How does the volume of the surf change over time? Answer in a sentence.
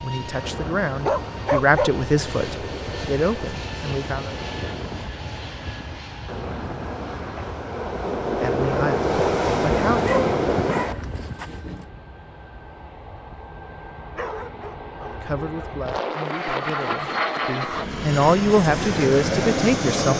The loudness of the surf goes up.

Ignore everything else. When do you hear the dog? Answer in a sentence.
The dog can be heard from 1.1 to 1.9 s, from 9.9 to 11.8 s and from 14.2 to 15.8 s.